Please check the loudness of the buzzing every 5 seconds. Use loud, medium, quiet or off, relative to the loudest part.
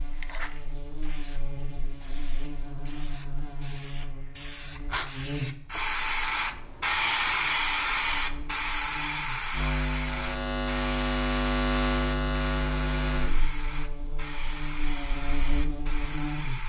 quiet, medium, loud, medium.